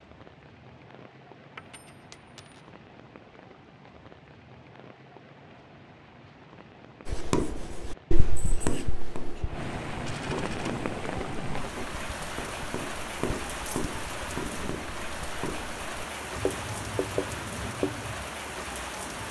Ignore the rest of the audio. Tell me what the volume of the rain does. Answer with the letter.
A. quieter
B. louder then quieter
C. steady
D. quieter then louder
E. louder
E.